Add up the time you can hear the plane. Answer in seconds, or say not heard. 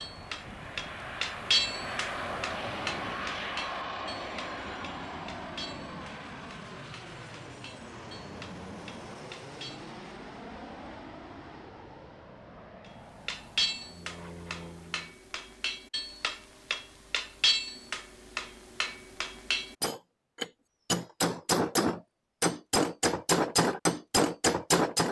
15 s.